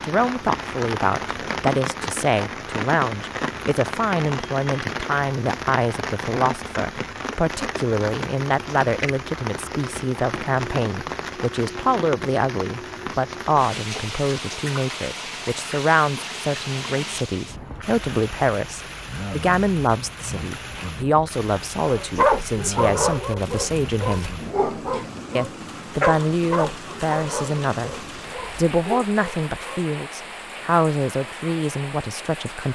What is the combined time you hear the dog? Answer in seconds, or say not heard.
8 s.